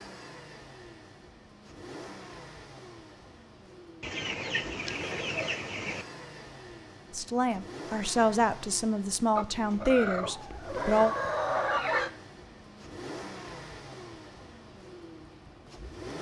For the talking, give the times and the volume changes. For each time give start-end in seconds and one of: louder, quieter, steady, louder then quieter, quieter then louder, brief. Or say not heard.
7.1-11.2 louder then quieter.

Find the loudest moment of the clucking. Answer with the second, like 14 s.
12 s.